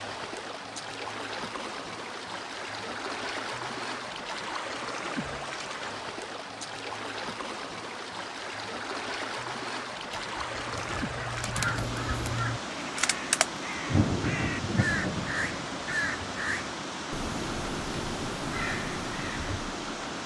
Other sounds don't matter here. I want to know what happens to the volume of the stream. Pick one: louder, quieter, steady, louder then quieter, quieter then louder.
steady.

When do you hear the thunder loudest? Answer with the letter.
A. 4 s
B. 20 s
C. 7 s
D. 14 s
D.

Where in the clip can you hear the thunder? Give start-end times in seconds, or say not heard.
13.8-16.0.